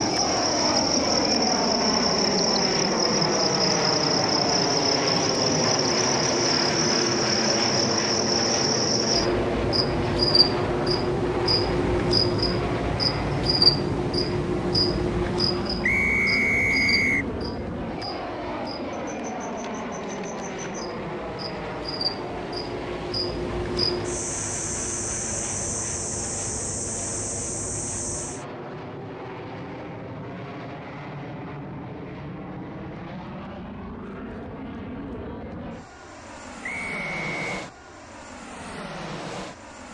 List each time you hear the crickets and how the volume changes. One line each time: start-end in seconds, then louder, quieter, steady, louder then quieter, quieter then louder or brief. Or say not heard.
0.0-28.4 quieter then louder.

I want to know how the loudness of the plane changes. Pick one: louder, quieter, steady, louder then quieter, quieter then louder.
quieter.